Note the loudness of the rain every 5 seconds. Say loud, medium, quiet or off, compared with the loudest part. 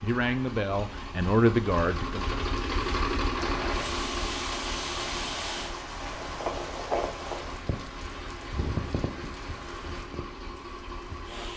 loud, loud, medium.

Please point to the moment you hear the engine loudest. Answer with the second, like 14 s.
3 s.